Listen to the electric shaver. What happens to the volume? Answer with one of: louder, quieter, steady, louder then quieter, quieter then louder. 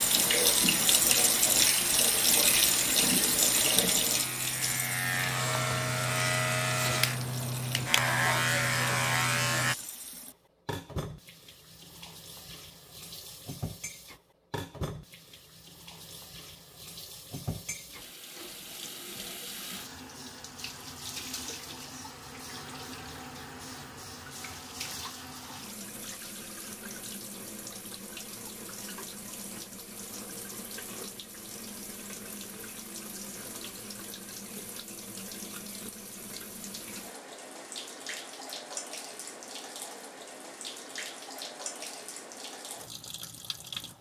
louder.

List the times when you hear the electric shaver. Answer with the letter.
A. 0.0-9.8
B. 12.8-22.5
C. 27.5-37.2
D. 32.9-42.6
A.